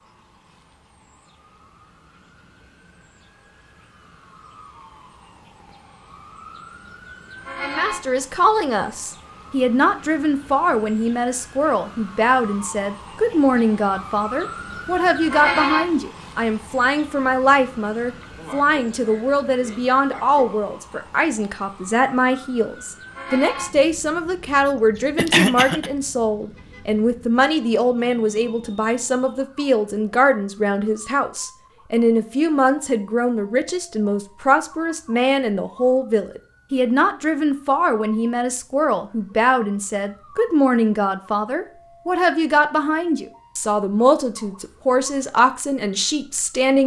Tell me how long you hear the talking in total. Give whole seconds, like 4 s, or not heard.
39 s.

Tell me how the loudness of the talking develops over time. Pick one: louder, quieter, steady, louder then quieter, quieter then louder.
steady.